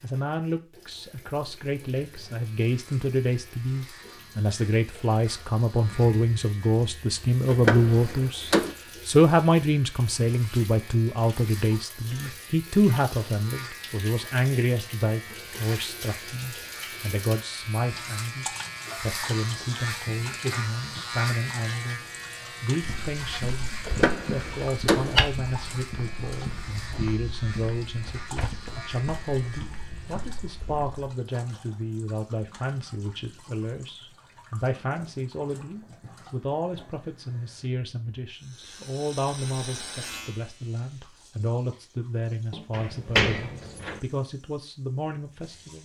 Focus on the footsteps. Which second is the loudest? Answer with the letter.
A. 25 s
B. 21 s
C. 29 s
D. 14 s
A.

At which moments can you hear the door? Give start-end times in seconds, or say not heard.
7.5-8.8, 23.9-25.2, 42.7-44.0.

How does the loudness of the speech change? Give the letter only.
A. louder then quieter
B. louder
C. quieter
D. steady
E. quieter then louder
C.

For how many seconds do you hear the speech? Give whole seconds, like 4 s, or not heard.
46 s.